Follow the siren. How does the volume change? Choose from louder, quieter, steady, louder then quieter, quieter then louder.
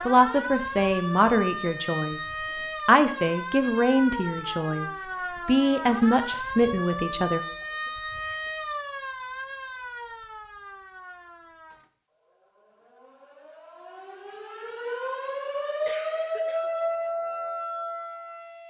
quieter then louder.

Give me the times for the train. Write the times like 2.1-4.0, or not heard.
not heard.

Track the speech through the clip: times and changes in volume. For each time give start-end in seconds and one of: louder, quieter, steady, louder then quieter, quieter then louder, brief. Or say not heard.
0.1-7.4 steady.